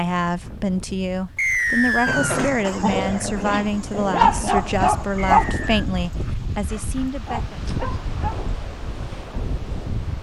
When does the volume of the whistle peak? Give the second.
2 s.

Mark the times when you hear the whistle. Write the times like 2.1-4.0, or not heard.
1.4-2.5, 5.3-5.8.